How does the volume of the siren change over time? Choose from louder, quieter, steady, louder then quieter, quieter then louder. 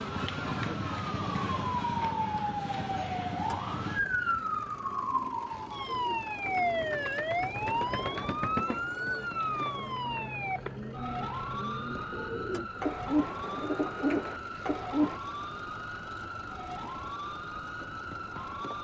quieter.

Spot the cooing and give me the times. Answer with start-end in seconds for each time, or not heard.
5.8-15.2.